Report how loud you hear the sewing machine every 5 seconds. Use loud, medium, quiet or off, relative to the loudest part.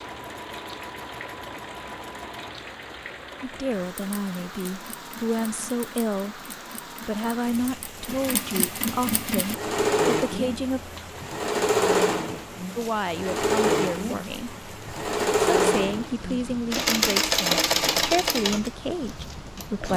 quiet, medium, loud, loud.